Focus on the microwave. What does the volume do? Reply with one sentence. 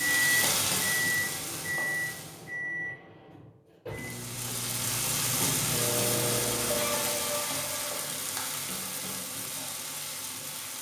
The volume of the microwave goes down, then up.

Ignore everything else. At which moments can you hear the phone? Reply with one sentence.
You can hear the phone from 6.7 to 7.8 s.